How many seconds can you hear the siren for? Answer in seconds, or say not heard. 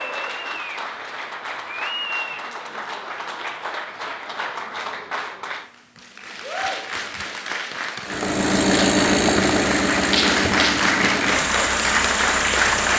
not heard.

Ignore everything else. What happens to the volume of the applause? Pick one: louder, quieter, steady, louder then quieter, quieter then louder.
louder.